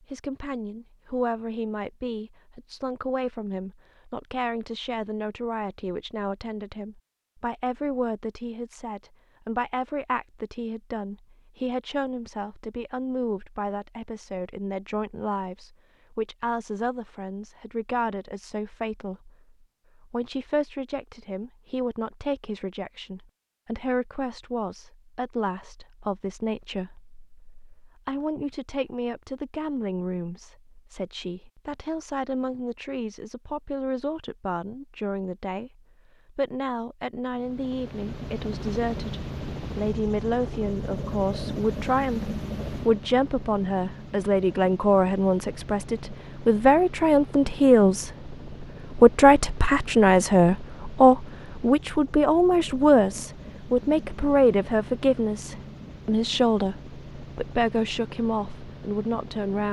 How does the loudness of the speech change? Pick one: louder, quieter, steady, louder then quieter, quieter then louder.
louder.